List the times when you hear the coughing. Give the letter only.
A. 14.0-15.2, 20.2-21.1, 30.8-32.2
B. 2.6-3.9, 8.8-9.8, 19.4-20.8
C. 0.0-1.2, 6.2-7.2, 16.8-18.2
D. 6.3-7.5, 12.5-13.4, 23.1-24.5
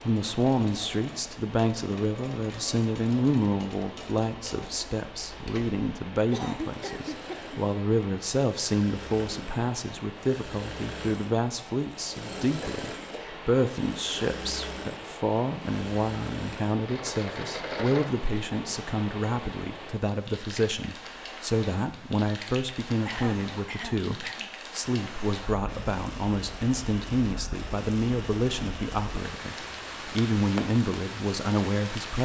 D.